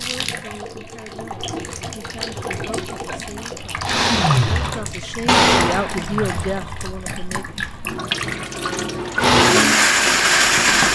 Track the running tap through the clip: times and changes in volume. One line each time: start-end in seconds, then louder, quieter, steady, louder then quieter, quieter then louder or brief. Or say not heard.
0.0-10.9 louder.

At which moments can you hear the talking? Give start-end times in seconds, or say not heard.
0.0-7.5.